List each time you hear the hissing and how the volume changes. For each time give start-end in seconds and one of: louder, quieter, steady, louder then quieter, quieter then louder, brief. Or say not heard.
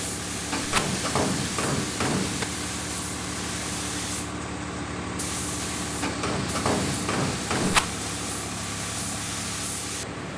0.0-10.3 steady.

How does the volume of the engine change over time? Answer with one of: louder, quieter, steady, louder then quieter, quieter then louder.
steady.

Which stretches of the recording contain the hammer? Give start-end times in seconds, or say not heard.
0.5-2.5, 6.0-7.9.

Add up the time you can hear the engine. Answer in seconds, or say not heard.
10 s.